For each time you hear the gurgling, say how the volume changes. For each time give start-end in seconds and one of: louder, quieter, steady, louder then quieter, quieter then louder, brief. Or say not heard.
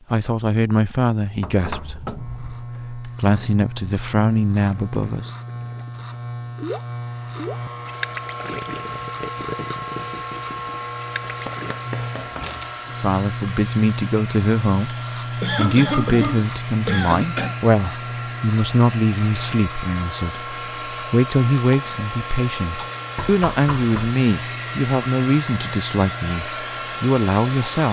4.5-11.8 louder then quieter.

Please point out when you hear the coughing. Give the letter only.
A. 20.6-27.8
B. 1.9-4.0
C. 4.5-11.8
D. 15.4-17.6
D.